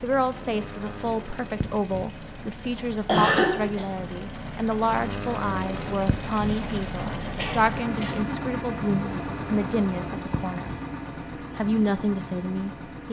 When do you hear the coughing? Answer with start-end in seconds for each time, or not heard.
3.0-3.9, 7.3-8.2.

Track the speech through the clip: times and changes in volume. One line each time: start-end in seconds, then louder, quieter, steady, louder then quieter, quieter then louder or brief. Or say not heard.
0.0-10.8 steady
11.6-13.0 brief.